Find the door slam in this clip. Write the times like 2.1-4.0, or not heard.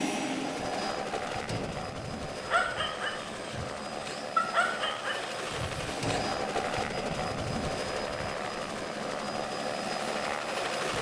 1.2-1.9, 5.8-6.5.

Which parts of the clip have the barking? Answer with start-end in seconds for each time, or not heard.
2.4-6.2.